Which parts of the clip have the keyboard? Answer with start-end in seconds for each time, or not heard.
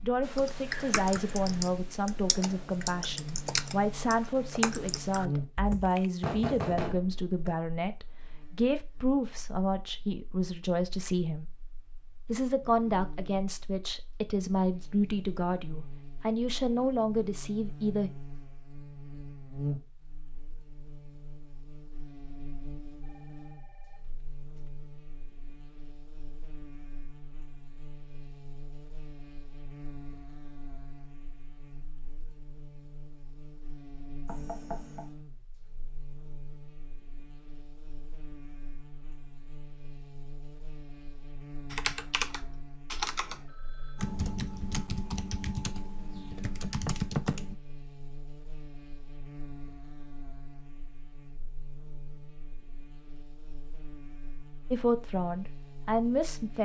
0.2-6.1, 41.7-47.5.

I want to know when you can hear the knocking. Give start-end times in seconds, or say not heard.
6.2-7.5, 34.2-35.1.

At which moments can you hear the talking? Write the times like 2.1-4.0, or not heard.
0.0-11.4, 12.2-18.1, 54.7-56.6.